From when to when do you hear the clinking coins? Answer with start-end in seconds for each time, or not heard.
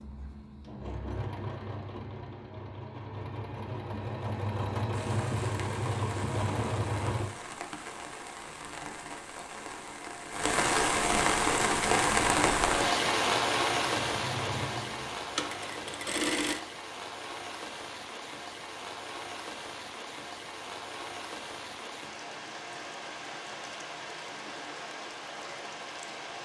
not heard.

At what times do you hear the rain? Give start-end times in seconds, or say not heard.
4.9-26.4.